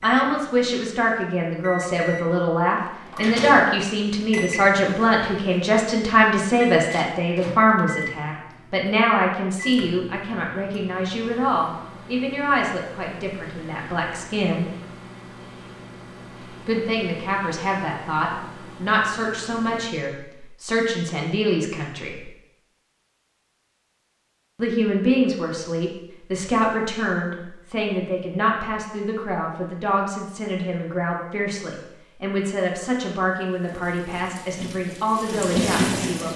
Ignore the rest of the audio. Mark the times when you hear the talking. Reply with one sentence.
The talking can be heard from 0.0 to 14.7 s, from 16.6 to 22.3 s and from 24.6 to 36.3 s.